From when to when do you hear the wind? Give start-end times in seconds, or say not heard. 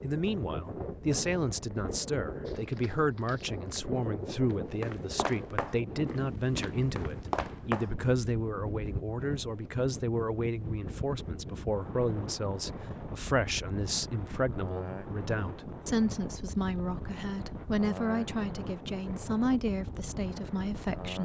0.0-21.2.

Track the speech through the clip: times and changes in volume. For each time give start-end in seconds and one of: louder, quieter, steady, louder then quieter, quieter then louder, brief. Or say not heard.
0.0-21.2 steady.